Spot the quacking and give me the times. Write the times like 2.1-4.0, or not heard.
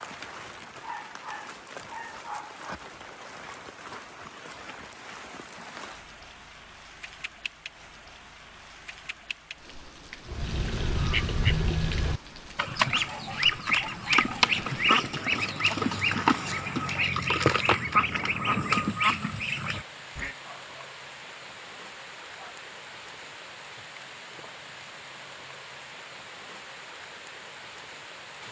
10.2-20.4.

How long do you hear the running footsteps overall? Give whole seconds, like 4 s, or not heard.
not heard.